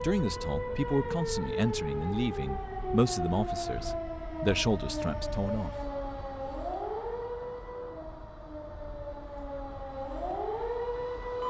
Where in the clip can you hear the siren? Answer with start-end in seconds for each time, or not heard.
0.0-11.4.